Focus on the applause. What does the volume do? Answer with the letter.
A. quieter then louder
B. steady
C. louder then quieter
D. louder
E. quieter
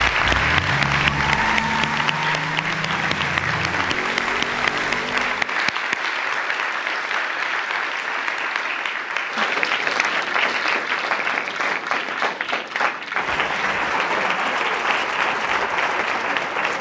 B.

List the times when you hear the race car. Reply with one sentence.
The race car can be heard from 0.0 to 5.6 s.